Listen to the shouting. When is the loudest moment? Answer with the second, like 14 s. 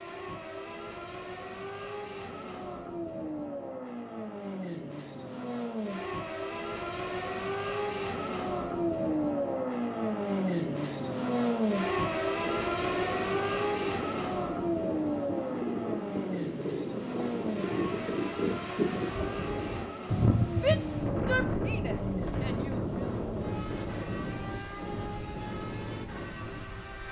21 s.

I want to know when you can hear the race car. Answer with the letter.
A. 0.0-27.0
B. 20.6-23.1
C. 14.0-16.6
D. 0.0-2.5
A.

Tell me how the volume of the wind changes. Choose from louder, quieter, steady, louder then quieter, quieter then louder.
louder then quieter.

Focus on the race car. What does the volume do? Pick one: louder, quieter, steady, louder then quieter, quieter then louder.
louder then quieter.